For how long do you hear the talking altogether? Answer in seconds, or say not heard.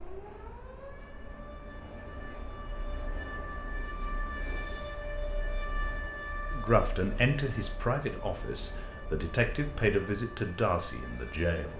5 s.